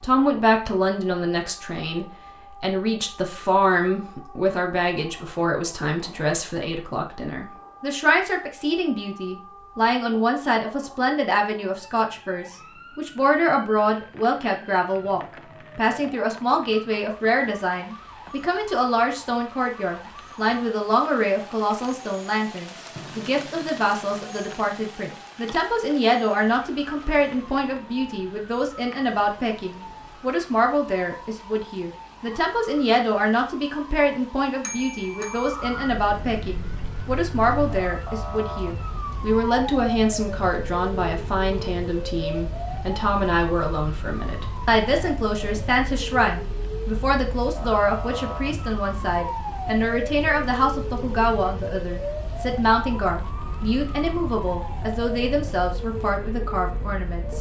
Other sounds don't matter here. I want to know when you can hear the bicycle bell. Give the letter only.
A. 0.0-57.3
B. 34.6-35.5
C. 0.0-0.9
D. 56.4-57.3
B.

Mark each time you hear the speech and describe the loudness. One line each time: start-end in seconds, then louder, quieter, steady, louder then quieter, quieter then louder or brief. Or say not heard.
0.0-57.3 steady.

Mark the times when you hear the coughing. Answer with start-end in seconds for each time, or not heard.
not heard.